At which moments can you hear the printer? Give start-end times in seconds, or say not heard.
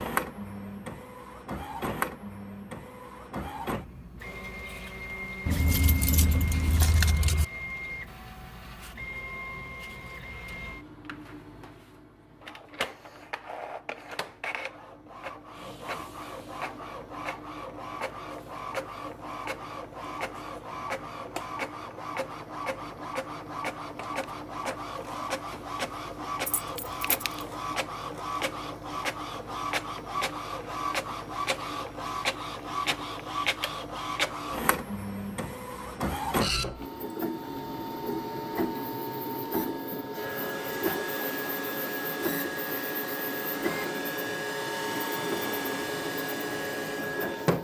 0.0-47.6.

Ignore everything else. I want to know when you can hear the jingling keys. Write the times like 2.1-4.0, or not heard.
5.5-7.5, 26.4-27.4.